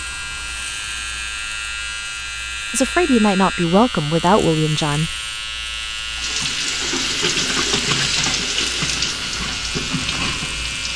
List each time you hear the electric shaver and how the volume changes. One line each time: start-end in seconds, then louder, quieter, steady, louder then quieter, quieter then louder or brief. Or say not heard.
0.0-10.9 steady.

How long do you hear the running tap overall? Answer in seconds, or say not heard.
5 s.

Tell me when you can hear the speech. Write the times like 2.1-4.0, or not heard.
2.7-5.2.